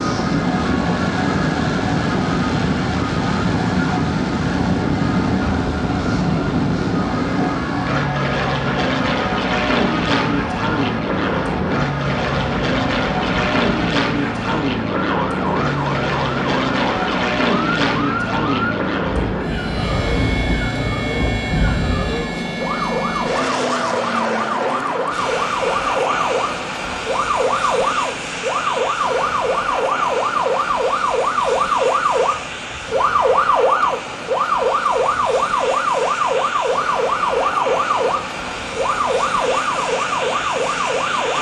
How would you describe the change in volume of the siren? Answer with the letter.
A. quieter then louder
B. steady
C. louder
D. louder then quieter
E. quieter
C.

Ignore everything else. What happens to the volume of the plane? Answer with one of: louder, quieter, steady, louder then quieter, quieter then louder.
quieter.